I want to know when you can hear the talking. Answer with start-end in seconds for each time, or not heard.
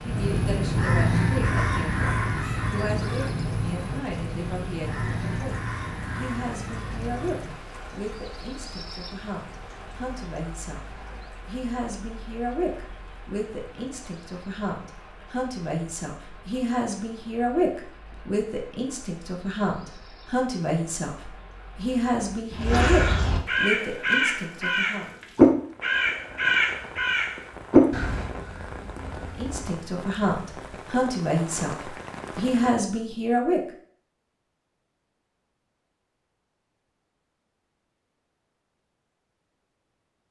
0.0-25.1, 29.1-33.6.